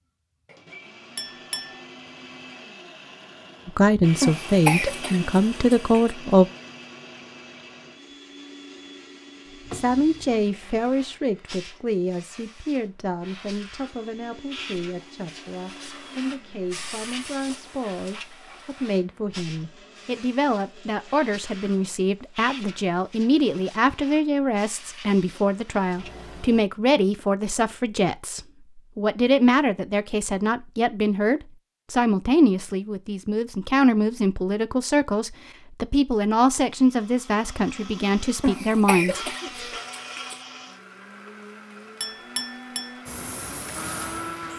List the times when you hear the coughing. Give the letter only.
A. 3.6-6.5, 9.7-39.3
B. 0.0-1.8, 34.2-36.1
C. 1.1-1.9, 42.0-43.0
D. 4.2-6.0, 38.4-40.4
D.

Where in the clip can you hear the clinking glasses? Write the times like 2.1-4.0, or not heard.
1.1-1.9, 42.0-43.0.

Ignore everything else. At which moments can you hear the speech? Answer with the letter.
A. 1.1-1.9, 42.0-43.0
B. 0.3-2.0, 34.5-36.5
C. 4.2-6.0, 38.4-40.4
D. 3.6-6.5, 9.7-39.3
D.